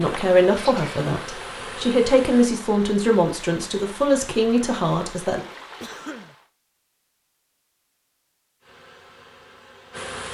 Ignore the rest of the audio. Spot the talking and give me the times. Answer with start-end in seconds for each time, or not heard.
0.0-5.5.